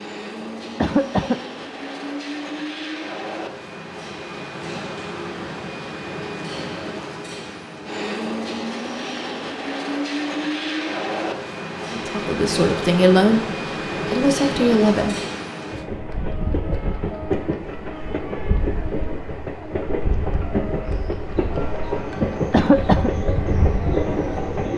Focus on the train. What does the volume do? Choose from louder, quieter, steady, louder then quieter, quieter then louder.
louder.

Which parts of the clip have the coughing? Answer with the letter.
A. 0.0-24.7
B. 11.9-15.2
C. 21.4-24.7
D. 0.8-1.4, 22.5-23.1
D.